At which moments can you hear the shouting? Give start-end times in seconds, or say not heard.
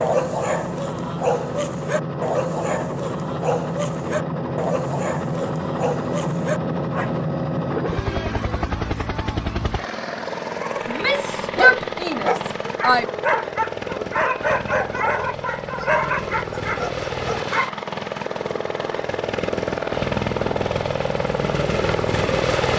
10.8-13.1.